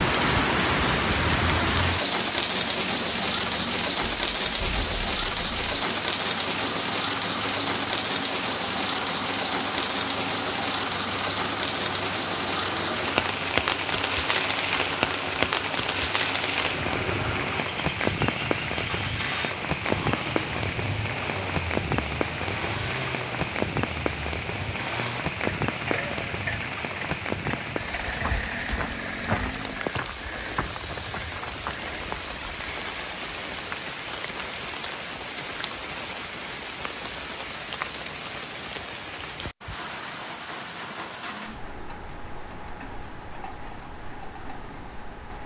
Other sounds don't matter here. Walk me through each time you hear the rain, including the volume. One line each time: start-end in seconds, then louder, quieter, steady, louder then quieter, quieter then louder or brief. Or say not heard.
0.0-45.4 quieter.